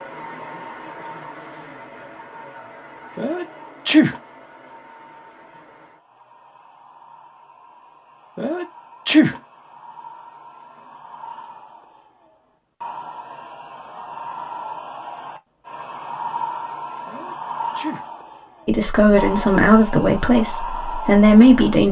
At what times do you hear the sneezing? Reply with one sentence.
The sneezing can be heard from 3.1 to 4.2 s, from 8.3 to 9.4 s and from 17.1 to 18.1 s.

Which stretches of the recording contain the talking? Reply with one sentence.
The talking can be heard from 18.6 to 21.8 s.